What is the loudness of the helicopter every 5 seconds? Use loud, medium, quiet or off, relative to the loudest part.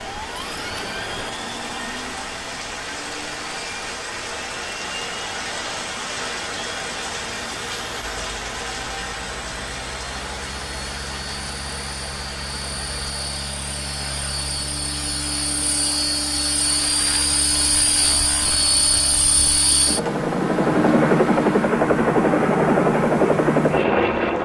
quiet, quiet, quiet, medium, loud.